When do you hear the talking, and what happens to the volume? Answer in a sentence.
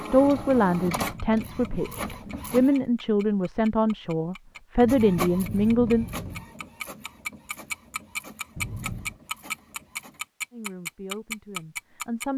The talking can be heard from 0.0 to 6.0 s, getting quieter then louder; and briefly from 10.5 to 12.3 s.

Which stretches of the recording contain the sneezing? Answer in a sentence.
You can't hear the sneezing here.